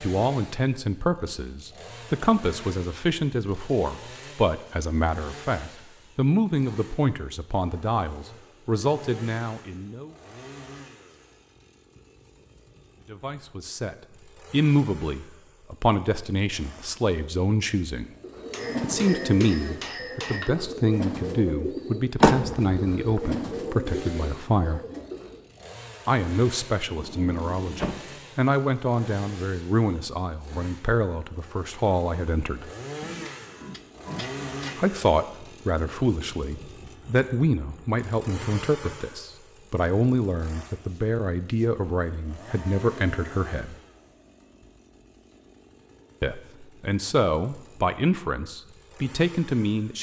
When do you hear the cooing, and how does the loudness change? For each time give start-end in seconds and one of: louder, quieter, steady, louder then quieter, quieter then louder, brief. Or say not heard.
18.2-25.4 steady.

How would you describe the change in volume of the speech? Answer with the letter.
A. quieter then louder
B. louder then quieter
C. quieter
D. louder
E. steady
E.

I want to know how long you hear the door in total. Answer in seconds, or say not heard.
2 s.